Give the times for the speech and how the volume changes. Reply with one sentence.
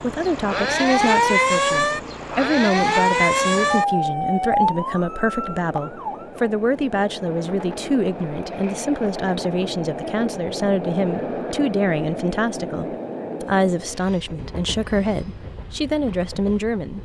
You can hear the speech from 0.0 to 16.9 s, at a steady volume.